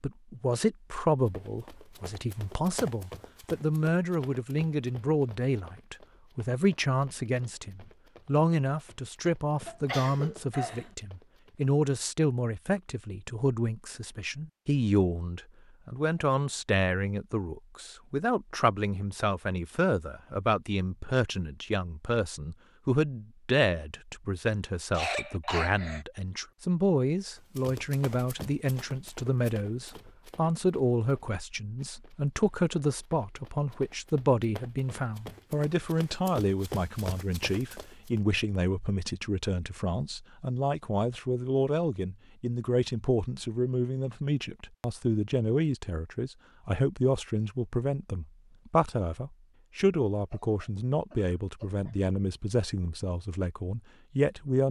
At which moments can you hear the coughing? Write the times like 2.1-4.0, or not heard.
9.7-10.9, 24.9-26.1, 50.1-52.7.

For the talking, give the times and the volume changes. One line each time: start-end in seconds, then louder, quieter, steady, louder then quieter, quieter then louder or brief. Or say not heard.
0.0-54.6 steady.